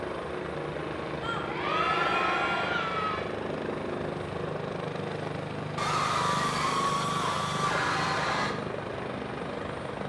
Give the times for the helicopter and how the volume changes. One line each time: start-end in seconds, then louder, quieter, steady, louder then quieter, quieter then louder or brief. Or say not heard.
0.0-10.0 steady.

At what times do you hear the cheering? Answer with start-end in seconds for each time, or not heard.
1.2-3.2, 5.8-8.6.